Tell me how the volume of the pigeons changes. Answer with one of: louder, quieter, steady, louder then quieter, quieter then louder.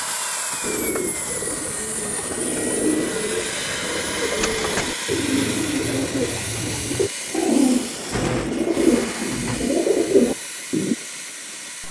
louder.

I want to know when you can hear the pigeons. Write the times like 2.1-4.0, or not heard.
0.6-10.9.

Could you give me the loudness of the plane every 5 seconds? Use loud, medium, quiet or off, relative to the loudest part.
loud, loud, medium.